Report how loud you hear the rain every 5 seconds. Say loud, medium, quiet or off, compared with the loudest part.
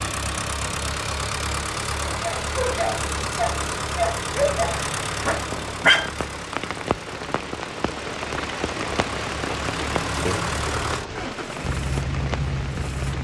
off, loud, loud.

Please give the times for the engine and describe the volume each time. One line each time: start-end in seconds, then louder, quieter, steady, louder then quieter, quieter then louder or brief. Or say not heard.
0.0-13.1 quieter then louder.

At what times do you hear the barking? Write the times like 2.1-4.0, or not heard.
1.9-6.1.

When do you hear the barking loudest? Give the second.
6 s.